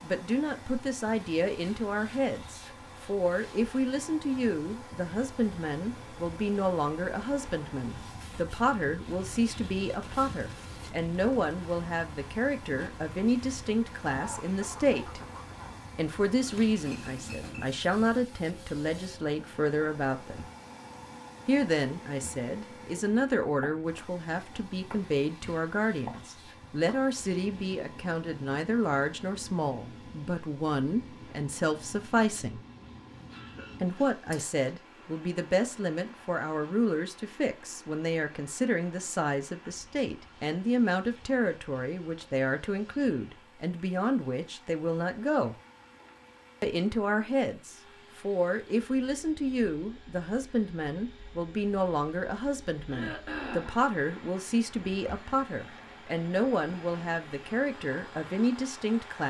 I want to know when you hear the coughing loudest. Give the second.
53 s.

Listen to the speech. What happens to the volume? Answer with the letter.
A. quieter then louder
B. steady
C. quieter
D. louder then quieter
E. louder
B.